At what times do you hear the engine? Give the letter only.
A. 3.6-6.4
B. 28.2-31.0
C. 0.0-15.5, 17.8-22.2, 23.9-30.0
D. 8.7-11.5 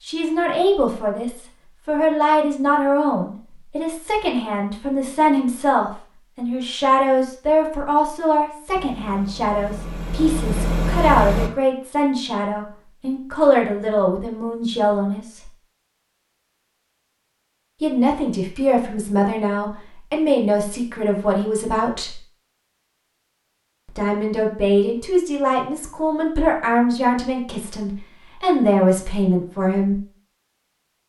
D.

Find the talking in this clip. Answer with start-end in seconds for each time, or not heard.
0.0-15.5, 17.8-22.2, 23.9-30.0.